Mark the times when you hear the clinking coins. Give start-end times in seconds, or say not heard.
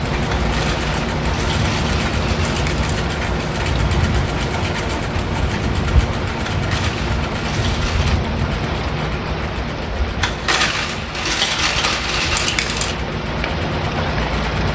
0.3-3.1, 6.4-8.2, 10.2-13.0.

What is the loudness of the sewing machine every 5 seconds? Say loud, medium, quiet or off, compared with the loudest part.
loud, loud, medium.